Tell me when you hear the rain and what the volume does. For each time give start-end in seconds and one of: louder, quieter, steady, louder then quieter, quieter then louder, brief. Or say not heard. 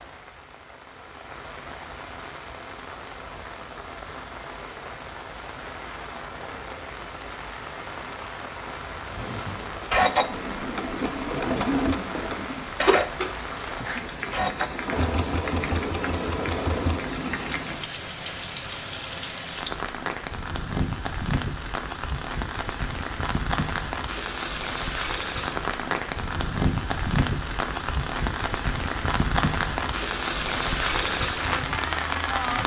0.0-32.6 louder.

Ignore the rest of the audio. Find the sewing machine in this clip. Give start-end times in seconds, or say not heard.
9.1-17.5.